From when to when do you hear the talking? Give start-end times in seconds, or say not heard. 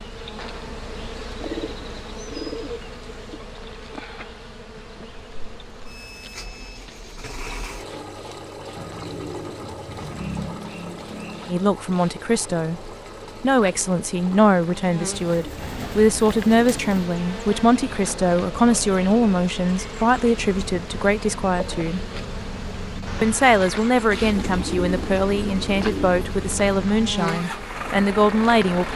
11.4-22.1, 23.2-28.9.